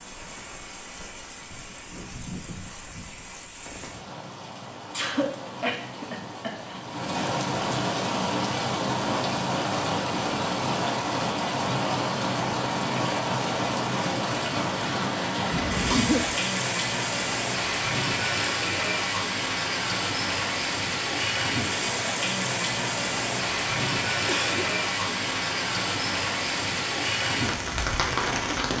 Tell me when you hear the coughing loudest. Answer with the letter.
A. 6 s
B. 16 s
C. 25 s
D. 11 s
B.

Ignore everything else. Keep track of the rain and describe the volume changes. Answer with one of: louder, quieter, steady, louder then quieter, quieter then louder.
louder.